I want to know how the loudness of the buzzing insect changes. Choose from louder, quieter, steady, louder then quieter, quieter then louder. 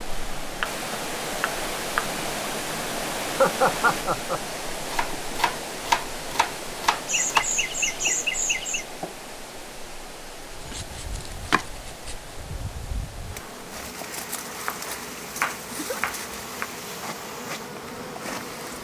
louder.